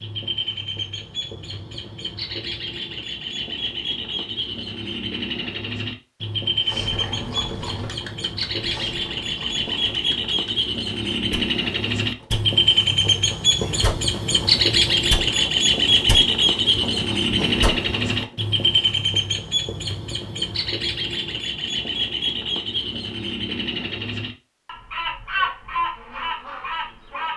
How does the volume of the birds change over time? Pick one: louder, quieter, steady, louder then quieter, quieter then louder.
louder then quieter.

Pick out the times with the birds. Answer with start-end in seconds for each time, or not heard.
0.0-27.3.